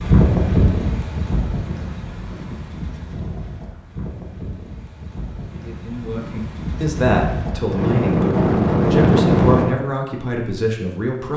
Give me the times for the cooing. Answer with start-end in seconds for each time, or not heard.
not heard.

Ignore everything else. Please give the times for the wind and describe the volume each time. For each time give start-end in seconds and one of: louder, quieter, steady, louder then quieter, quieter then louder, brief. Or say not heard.
0.0-9.7 quieter then louder.